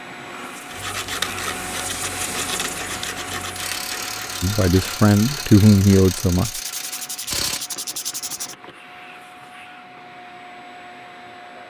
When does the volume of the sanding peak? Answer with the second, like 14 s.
1 s.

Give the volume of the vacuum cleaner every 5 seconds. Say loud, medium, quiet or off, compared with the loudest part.
loud, medium, medium.